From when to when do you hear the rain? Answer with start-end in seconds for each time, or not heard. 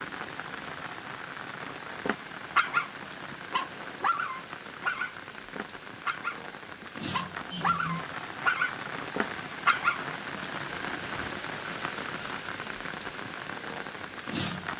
0.0-14.7.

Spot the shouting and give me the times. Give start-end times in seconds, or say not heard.
not heard.